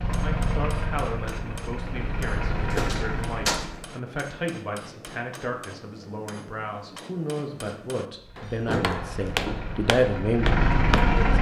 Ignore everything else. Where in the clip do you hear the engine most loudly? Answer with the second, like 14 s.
11 s.